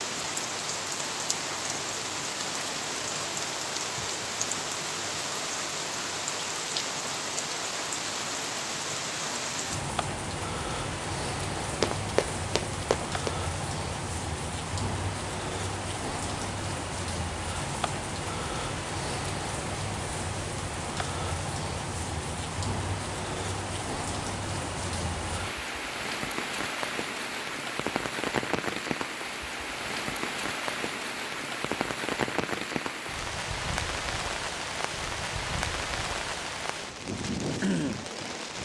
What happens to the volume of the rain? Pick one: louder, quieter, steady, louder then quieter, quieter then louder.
steady.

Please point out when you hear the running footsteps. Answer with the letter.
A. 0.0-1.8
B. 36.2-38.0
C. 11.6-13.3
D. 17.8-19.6
C.